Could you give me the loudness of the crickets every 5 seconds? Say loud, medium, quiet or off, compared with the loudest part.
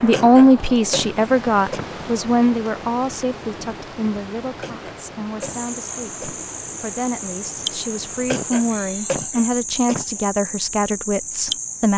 off, loud, loud.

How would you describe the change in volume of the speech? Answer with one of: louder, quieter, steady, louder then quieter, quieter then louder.
quieter then louder.